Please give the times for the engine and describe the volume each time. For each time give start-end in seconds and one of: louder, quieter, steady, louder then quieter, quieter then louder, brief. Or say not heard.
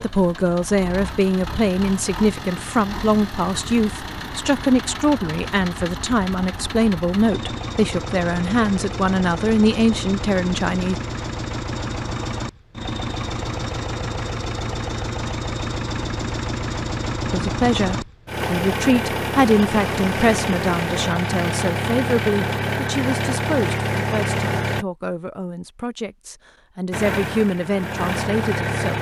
0.0-24.9 louder
26.9-28.9 brief.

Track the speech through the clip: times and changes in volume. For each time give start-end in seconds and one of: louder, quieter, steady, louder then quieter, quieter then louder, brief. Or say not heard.
0.0-10.9 steady
17.3-28.9 quieter then louder.